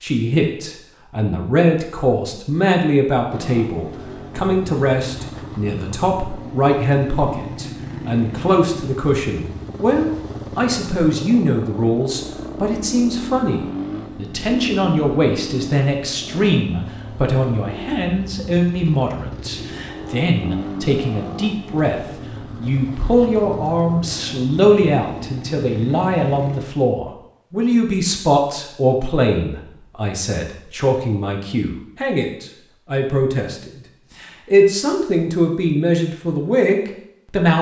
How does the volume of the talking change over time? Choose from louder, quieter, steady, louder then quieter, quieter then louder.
steady.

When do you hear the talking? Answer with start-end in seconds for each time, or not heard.
0.0-37.5.